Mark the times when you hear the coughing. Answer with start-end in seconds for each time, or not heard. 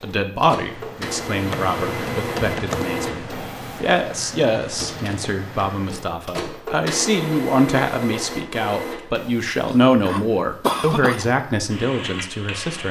9.7-11.3.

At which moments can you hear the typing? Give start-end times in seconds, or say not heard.
0.6-6.2.